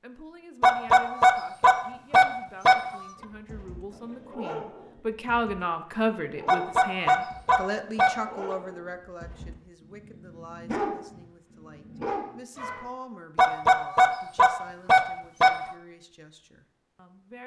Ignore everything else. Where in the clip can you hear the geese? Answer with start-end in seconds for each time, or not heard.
0.6-2.8, 6.5-8.6, 13.3-15.5.